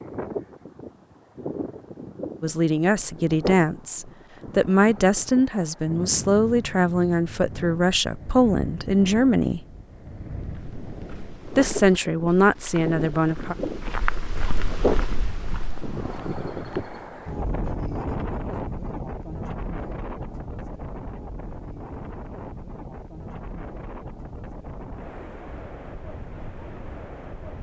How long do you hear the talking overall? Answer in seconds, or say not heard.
9 s.